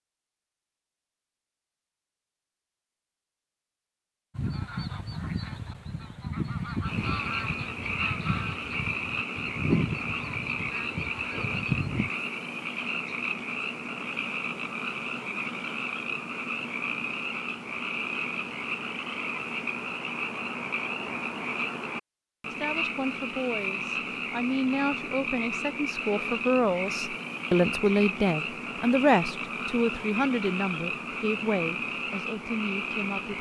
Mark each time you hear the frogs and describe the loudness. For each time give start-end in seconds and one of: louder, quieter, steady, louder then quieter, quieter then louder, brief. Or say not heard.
6.8-33.3 steady.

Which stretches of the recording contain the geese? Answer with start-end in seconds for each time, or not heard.
4.3-12.1.